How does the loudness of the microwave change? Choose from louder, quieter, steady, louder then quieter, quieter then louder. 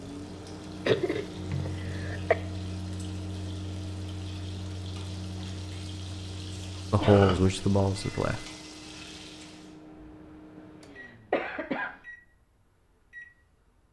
quieter.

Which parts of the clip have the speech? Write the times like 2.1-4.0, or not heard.
6.9-8.4.